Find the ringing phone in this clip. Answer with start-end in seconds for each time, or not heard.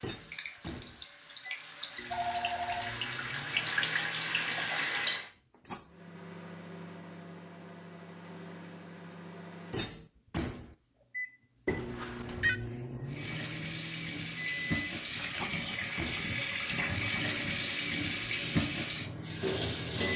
2.1-3.0, 11.7-12.6.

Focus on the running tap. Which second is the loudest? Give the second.
4 s.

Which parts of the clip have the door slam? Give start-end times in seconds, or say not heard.
not heard.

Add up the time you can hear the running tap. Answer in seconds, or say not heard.
12 s.